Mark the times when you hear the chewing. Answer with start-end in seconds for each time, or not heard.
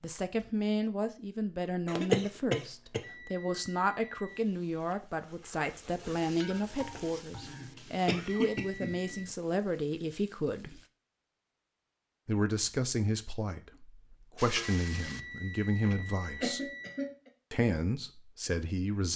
not heard.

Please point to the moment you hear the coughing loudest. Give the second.
2 s.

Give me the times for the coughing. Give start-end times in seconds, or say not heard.
1.9-3.0, 7.4-9.2, 15.9-17.3.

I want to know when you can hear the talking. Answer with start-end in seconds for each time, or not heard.
0.0-10.8, 12.2-16.7, 17.5-19.1.